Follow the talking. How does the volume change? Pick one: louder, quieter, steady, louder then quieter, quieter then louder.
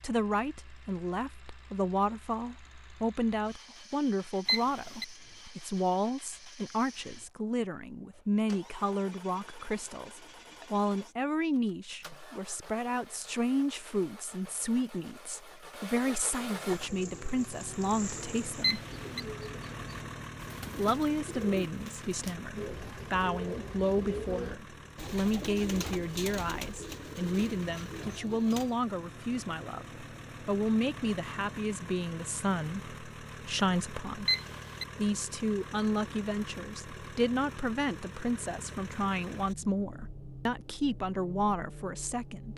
steady.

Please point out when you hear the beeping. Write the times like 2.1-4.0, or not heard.
4.5-5.0, 18.6-19.2, 34.2-34.9.